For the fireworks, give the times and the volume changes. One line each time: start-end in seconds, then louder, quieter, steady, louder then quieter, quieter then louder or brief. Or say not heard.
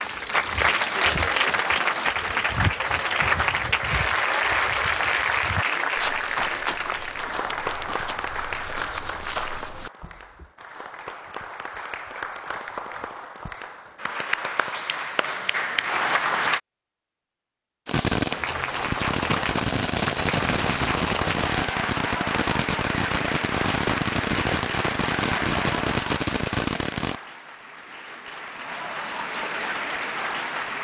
17.9-27.2 steady.